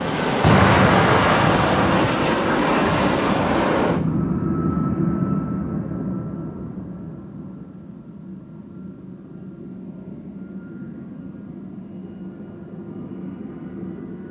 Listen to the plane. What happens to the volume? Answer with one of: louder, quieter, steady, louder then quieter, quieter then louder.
quieter.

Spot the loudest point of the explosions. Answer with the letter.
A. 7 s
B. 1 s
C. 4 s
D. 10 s
B.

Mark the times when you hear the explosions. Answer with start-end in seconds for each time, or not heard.
0.4-2.1.